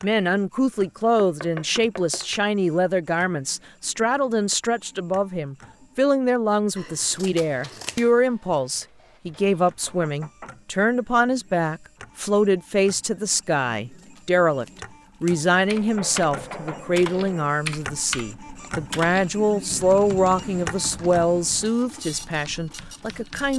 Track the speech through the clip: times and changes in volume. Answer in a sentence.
You can hear the speech from 0.0 to 23.5 s, at a steady volume.